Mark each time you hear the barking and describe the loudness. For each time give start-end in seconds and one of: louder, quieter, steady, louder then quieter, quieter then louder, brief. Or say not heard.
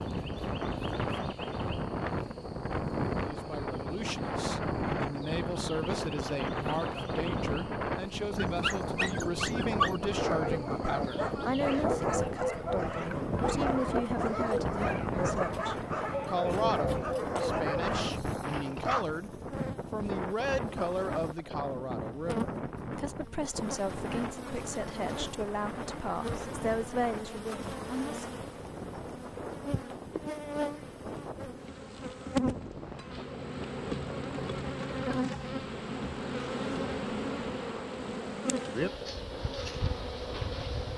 8.3-19.1 steady.